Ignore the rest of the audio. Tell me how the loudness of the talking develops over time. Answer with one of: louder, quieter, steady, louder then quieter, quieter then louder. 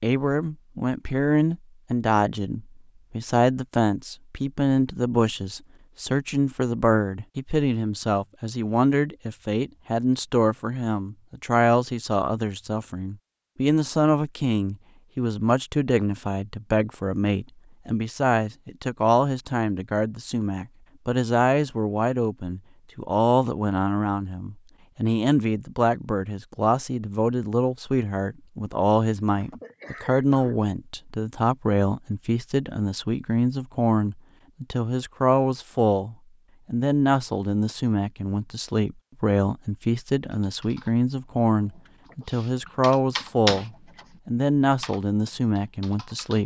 steady.